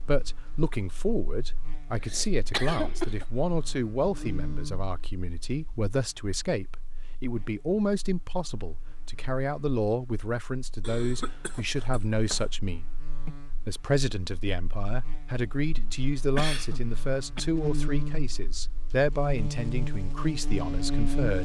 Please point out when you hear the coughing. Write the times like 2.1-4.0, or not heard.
1.9-3.2, 10.8-12.4, 15.8-17.4.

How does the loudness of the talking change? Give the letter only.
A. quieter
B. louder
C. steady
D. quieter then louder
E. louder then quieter
C.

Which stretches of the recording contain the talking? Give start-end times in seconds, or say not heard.
0.0-21.3.